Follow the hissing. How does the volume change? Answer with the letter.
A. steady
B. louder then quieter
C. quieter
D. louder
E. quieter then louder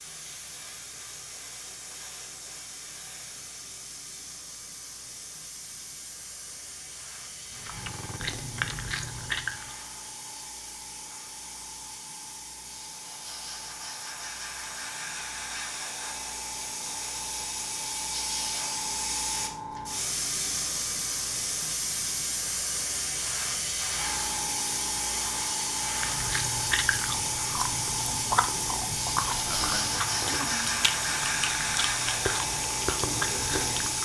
D.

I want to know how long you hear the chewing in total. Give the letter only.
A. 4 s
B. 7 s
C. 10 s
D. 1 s
C.